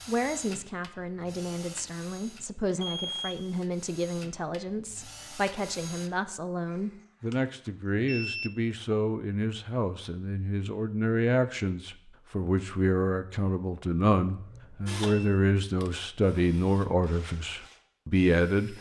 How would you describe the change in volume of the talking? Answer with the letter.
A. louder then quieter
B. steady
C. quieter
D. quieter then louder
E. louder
E.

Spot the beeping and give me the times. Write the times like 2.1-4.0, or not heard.
2.8-3.4, 6.7-7.3, 8.1-8.5, 14.3-15.4.